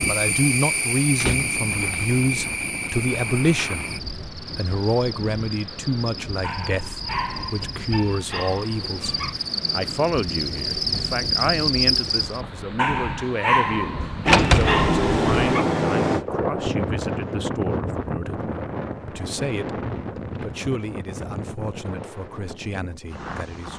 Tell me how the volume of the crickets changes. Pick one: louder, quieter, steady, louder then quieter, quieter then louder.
quieter then louder.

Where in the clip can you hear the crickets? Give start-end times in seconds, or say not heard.
0.0-12.4.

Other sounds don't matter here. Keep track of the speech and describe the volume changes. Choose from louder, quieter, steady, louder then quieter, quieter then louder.
quieter.